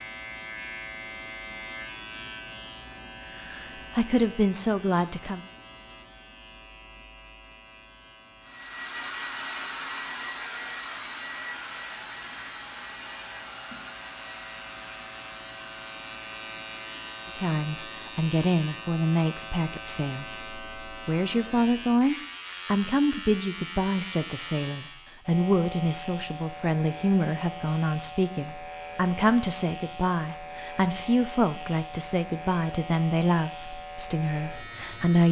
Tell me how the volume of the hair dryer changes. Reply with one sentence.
The volume of the hair dryer goes down.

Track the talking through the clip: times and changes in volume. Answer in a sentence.
The talking can be heard briefly from 3.4 to 5.4 s; and from 17.4 to 35.2 s, at a steady volume.